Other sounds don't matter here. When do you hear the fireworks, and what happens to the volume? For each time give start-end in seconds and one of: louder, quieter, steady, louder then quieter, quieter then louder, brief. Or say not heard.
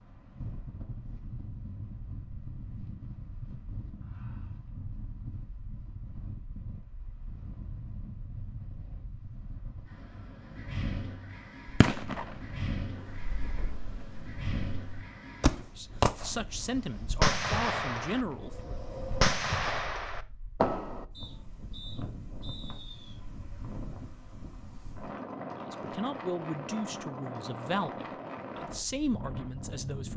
11.7-21.1 louder.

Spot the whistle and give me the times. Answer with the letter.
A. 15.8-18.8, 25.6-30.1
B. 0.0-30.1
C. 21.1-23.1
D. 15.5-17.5
C.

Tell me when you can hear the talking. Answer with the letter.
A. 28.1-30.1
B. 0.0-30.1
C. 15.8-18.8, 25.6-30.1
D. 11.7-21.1
C.